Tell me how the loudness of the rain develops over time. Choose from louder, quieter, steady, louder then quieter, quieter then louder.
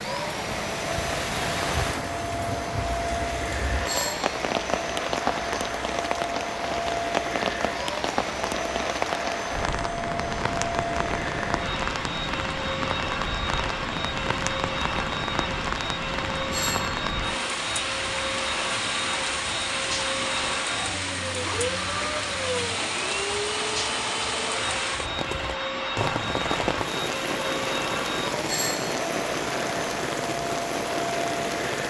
steady.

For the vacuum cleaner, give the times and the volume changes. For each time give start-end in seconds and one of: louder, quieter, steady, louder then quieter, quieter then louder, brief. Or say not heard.
0.0-31.8 steady.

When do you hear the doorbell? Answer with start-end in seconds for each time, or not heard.
3.9-4.3, 16.5-17.0, 28.4-28.9.